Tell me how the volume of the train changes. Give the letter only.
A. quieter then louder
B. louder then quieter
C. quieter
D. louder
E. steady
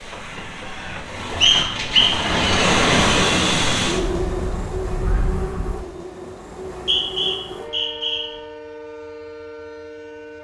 B.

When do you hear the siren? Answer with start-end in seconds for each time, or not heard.
4.0-5.8.